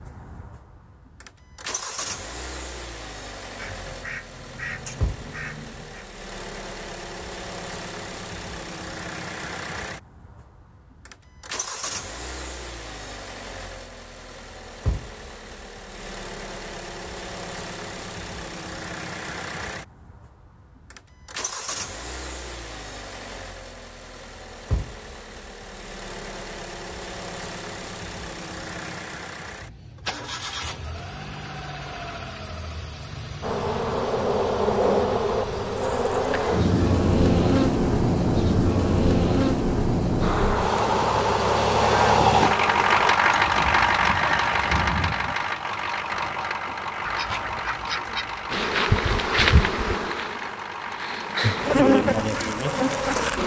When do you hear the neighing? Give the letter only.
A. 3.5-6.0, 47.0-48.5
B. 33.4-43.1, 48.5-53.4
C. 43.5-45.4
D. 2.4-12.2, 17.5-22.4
C.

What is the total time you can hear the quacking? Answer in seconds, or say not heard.
4 s.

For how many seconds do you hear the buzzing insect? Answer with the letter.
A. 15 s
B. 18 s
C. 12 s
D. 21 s
A.